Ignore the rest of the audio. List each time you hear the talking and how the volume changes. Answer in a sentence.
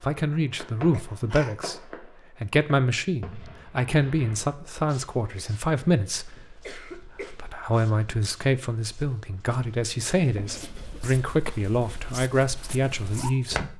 You can hear the talking from 0.0 to 13.7 s, at a steady volume.